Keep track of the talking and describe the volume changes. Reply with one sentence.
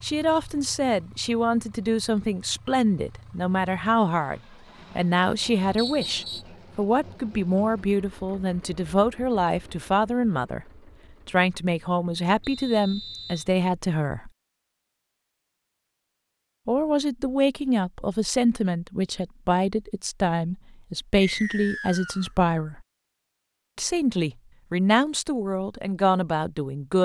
The loudness of the talking stays about the same.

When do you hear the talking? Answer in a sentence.
You can hear the talking from 0.0 to 10.7 s, from 11.2 to 14.3 s, from 16.6 to 22.8 s and from 23.8 to 27.0 s.